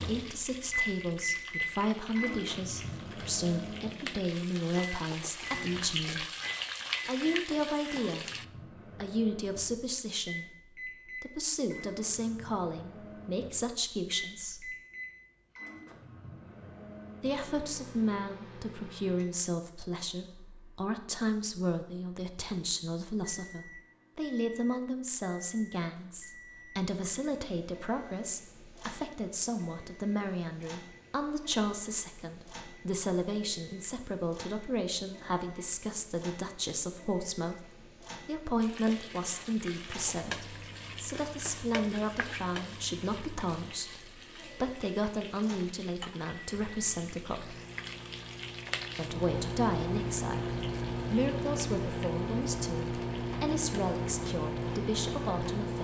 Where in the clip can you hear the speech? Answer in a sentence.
You can hear the speech from 0.0 to 6.3 s, from 7.0 to 8.3 s, from 9.0 to 14.8 s, from 17.2 to 47.5 s and from 49.0 to 55.7 s.